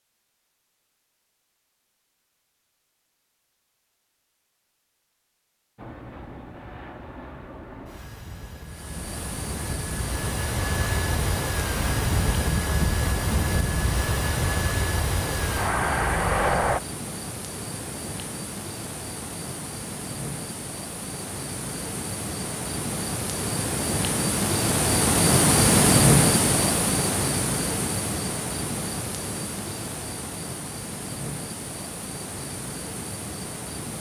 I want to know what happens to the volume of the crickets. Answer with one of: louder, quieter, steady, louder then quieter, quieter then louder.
louder then quieter.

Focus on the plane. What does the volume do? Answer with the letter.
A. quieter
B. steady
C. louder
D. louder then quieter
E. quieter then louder
C.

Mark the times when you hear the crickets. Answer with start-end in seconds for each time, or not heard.
8.7-33.9.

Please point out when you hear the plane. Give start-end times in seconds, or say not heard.
5.8-16.8.